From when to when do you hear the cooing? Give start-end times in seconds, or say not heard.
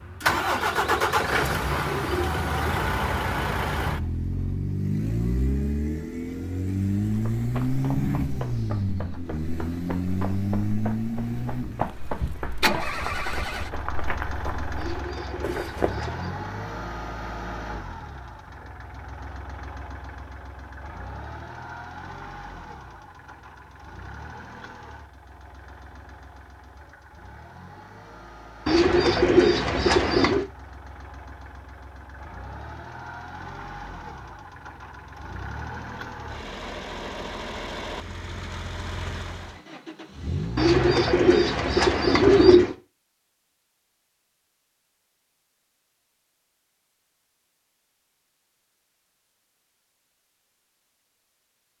0.2-2.9, 14.8-16.3, 28.6-30.4, 40.5-42.8.